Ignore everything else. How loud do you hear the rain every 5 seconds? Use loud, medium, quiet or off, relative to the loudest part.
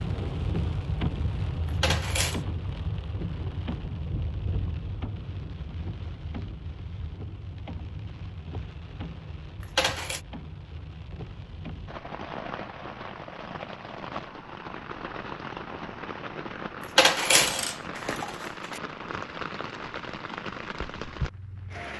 loud, medium, medium, loud, loud.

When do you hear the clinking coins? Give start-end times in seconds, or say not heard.
1.6-2.4, 9.6-10.2, 16.8-18.8.